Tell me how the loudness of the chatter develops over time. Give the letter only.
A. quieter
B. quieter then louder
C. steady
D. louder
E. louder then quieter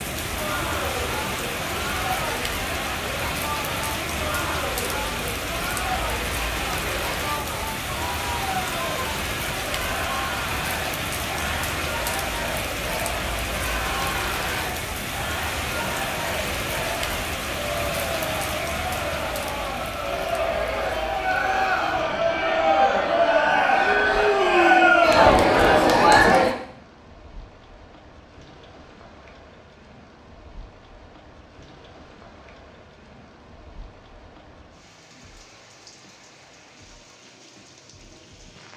D.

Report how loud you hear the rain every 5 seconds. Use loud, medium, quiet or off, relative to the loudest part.
loud, loud, loud, loud, medium, quiet, quiet, quiet.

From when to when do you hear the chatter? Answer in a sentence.
The chatter can be heard from 0.2 to 26.6 s.